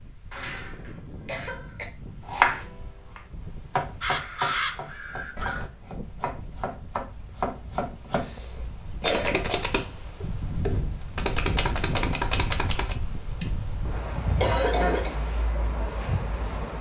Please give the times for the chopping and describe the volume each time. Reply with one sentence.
The chopping can be heard from 2.2 to 12.9 s, getting quieter then louder.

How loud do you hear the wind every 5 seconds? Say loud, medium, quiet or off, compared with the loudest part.
quiet, medium, loud, loud.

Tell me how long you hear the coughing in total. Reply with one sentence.
You can hear the coughing for 5 seconds altogether.